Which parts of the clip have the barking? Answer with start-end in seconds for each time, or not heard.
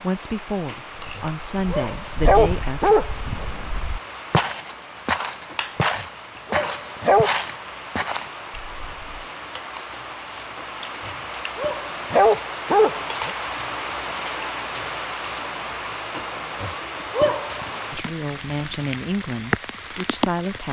0.7-3.5, 5.5-7.3, 10.6-13.3, 16.1-17.7.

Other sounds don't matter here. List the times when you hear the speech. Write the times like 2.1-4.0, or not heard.
0.0-3.0, 17.9-20.6.